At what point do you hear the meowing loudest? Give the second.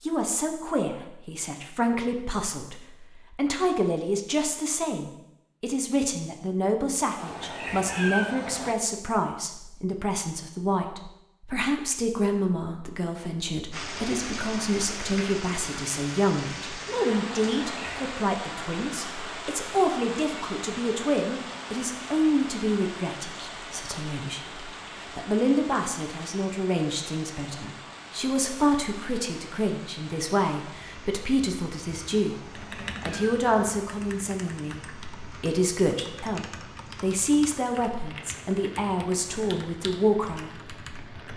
8 s.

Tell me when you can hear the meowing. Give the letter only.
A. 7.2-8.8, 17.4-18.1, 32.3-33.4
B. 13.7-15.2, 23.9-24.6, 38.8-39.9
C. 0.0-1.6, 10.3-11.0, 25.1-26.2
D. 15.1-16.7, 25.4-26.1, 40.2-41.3
A.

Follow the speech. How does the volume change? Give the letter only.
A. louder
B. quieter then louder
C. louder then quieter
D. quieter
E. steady
E.